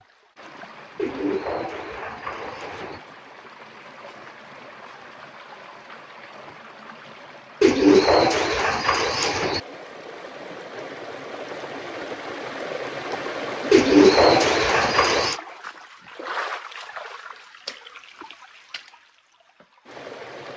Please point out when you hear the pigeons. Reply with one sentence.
You can hear the pigeons from 0.9 to 3.0 s, from 7.6 to 9.6 s and from 13.7 to 15.4 s.